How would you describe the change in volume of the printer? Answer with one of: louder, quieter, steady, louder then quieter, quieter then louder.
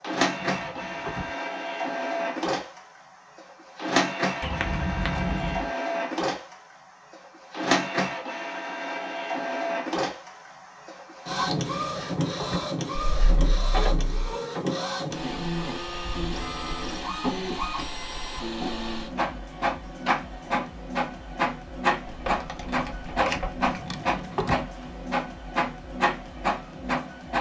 steady.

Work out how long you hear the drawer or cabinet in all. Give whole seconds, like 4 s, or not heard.
3 s.